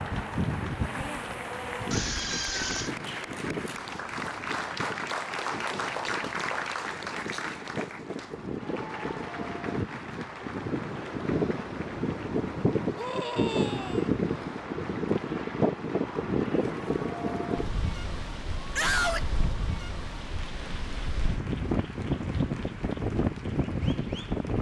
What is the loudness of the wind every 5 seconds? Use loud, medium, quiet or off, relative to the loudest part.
medium, medium, loud, loud, loud.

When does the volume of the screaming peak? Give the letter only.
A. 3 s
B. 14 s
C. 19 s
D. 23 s
C.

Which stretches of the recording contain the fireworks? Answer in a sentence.
You can't hear the fireworks here.